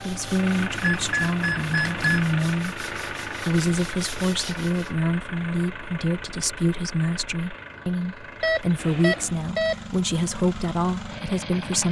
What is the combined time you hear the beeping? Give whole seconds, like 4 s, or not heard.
3 s.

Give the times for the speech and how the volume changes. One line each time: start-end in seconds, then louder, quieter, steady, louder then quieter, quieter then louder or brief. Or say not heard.
0.0-11.8 steady.